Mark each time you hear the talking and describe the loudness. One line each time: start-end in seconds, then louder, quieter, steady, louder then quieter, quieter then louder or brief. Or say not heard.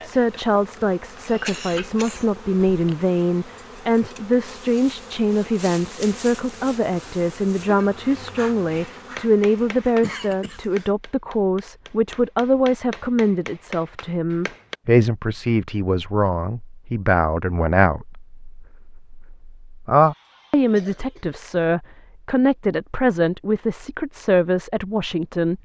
0.0-25.6 steady.